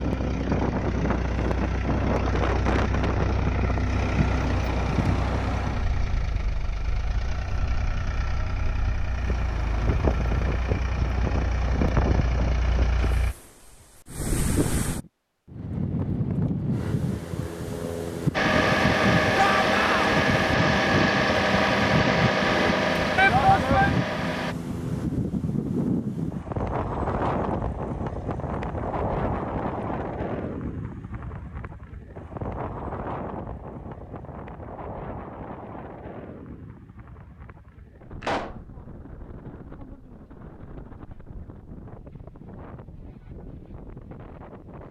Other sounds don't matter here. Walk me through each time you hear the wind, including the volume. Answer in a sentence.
The wind can be heard from 0.0 to 44.8 s, getting quieter.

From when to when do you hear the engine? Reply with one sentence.
You can hear the engine from 0.0 to 13.3 s and from 18.3 to 24.6 s.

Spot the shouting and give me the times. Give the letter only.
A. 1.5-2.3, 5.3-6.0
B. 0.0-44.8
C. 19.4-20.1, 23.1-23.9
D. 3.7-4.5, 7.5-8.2
C.